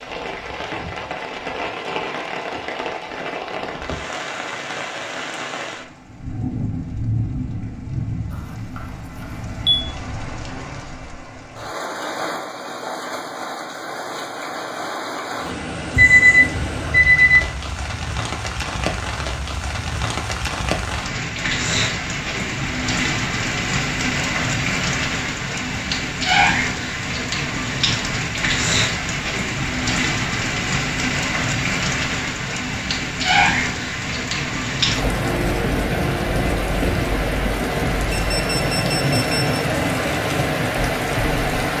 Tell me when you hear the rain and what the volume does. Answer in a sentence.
You can hear the rain from 0.0 to 41.7 s, getting louder.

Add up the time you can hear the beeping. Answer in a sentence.
The beeping can be heard for 4 seconds in total.